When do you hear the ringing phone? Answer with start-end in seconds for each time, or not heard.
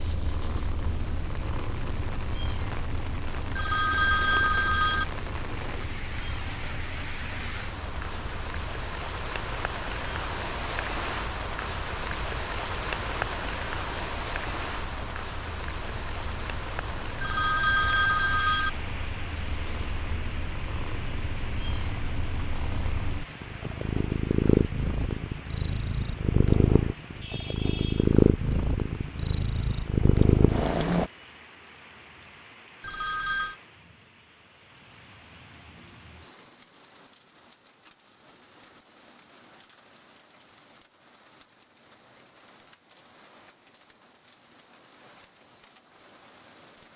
3.5-5.0, 17.2-18.7, 32.8-33.5.